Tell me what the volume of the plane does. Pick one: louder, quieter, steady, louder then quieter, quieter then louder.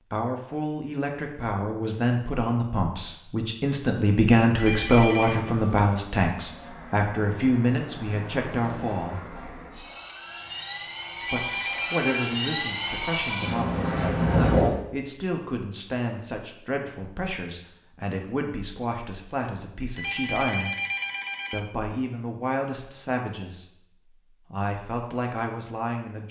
louder.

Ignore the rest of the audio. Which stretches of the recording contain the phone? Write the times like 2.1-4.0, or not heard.
4.5-5.4, 11.2-12.3, 19.9-21.6.